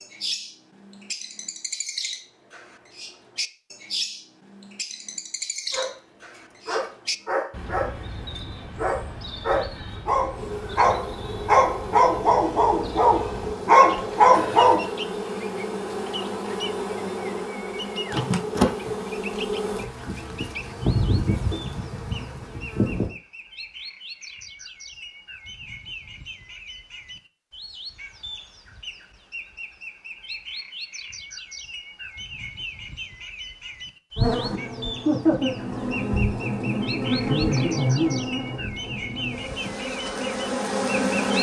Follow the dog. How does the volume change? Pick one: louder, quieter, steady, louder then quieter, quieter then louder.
louder.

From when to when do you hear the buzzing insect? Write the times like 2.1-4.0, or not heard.
10.3-23.1, 34.1-41.3.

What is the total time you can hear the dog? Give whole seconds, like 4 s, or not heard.
9 s.